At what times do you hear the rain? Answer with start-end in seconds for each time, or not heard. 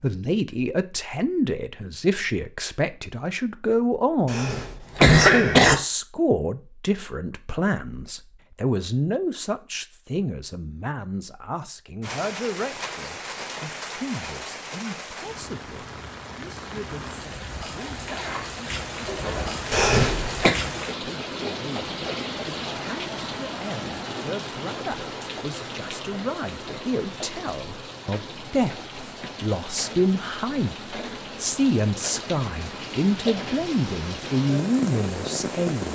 12.0-35.8.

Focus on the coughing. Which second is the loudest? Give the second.
5 s.